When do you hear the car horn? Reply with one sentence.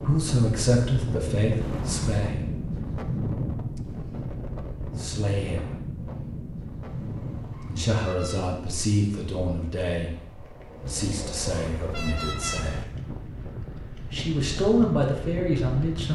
You can hear the car horn from 1.6 to 2.2 s, from 6.8 to 8.5 s and from 10.8 to 12.8 s.